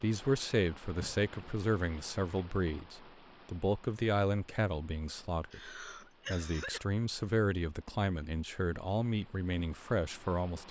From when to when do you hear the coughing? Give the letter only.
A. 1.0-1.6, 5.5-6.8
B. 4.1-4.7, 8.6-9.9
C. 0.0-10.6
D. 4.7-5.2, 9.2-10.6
A.